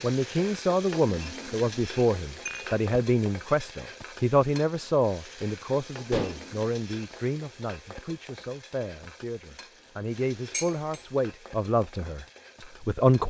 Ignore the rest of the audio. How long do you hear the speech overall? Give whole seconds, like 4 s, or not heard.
13 s.